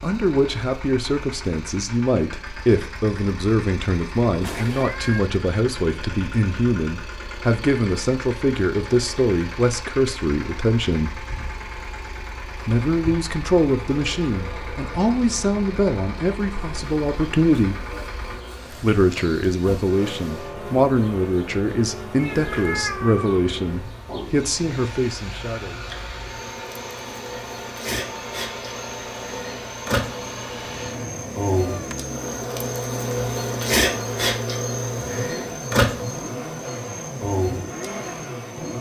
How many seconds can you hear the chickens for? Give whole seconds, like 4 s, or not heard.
not heard.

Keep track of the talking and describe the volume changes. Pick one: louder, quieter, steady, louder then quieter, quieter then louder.
steady.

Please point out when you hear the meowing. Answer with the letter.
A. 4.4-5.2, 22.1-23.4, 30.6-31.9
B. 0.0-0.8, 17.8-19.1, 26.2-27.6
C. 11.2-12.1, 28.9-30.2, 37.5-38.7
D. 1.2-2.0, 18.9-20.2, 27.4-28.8
A.